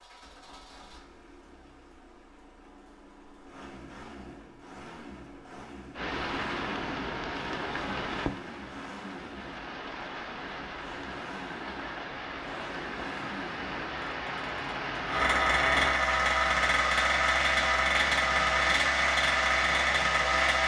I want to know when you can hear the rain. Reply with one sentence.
You can hear the rain from 6.0 to 20.6 s.